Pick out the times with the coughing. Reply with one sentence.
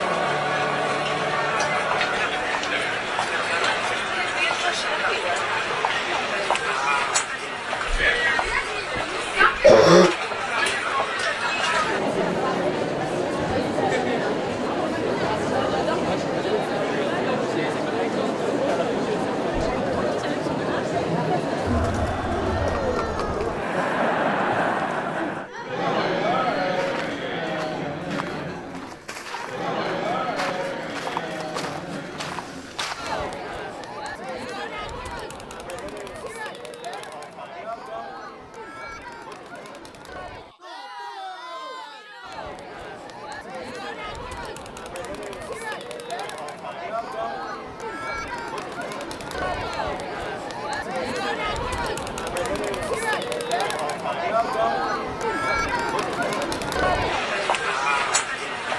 The coughing can be heard from 7.8 to 10.2 s.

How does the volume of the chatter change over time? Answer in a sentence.
The volume of the chatter goes down, then up.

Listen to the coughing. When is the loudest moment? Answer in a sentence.
The volume of the coughing peaks at 10 seconds.